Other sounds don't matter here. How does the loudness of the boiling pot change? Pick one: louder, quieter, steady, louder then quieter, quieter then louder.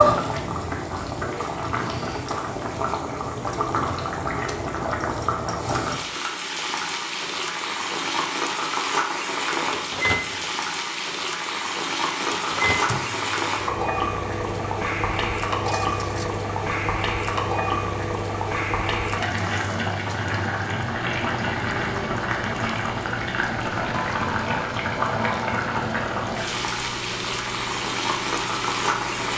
steady.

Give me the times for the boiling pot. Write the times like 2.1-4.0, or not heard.
0.0-29.3.